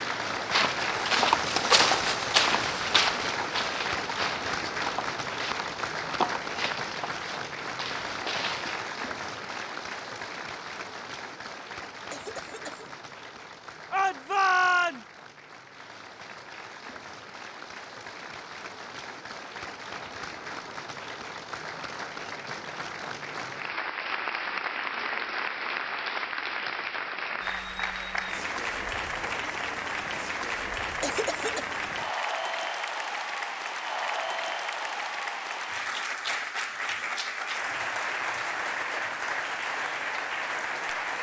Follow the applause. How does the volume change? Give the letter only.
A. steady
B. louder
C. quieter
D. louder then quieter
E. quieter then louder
E.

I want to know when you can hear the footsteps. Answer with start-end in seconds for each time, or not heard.
0.3-8.8.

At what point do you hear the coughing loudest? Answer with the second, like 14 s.
31 s.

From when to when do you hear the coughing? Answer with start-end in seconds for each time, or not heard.
12.1-12.9, 31.0-31.6.